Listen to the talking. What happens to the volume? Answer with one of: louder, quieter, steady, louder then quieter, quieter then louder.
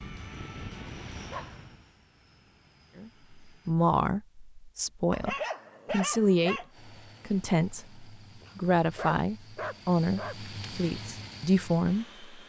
steady.